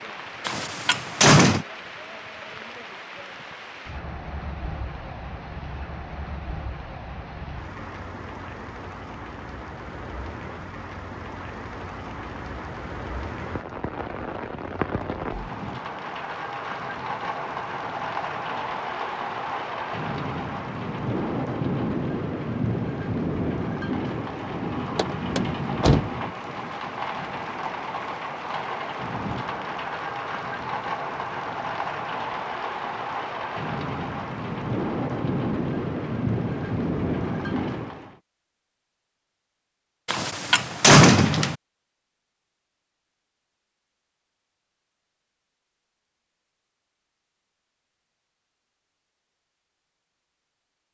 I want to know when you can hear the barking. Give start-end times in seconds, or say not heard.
not heard.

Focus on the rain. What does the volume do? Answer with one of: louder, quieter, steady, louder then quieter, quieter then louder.
louder.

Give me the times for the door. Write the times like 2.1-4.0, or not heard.
0.5-1.6, 24.9-26.1, 40.0-41.5.